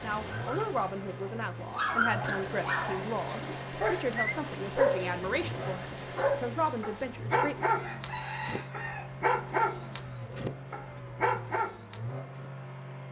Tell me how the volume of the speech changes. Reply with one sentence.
The loudness of the speech stays about the same.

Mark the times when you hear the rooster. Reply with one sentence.
You can hear the rooster from 7.8 to 9.2 s.